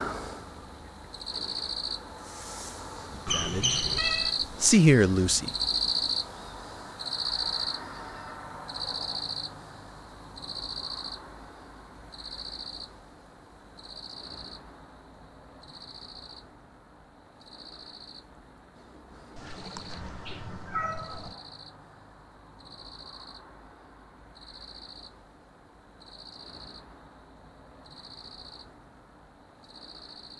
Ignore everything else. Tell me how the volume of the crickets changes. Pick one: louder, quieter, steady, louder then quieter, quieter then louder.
quieter.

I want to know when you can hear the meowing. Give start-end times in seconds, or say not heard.
3.2-4.3, 19.4-21.4.